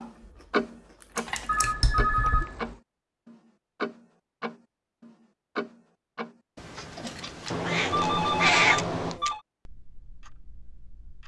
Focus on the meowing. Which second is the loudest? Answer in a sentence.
The volume of the meowing peaks at 9 seconds.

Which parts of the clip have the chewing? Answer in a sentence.
The chewing can be heard from 0.0 to 1.8 s.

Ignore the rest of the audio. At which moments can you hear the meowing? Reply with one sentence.
You can hear the meowing from 1.6 to 2.5 s and from 7.5 to 9.2 s.